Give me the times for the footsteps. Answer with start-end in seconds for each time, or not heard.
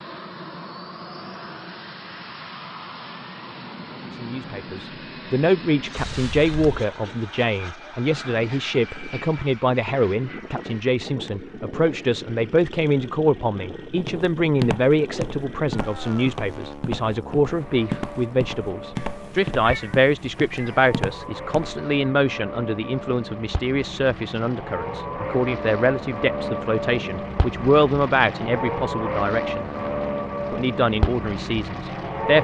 14.0-21.9.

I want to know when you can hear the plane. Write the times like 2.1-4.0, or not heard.
0.0-32.4.